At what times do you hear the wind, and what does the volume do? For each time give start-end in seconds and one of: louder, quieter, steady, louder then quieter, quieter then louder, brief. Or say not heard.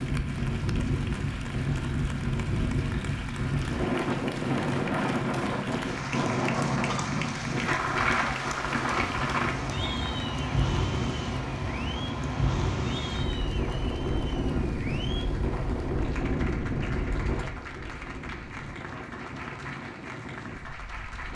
0.0-21.3 quieter.